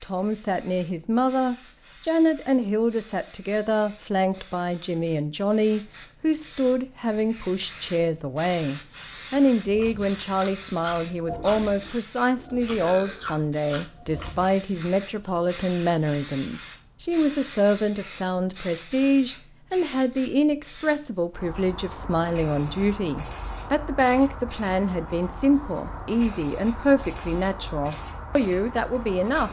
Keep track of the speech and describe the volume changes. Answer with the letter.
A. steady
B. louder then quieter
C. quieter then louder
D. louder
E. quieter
A.